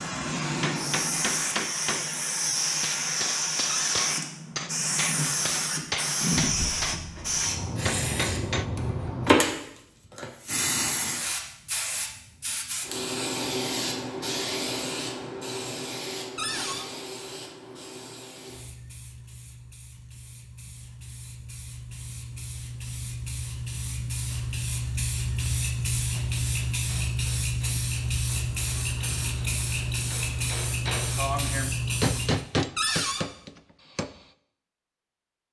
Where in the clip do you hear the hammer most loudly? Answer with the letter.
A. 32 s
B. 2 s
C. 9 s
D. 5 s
A.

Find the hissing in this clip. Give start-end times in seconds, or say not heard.
0.0-32.5.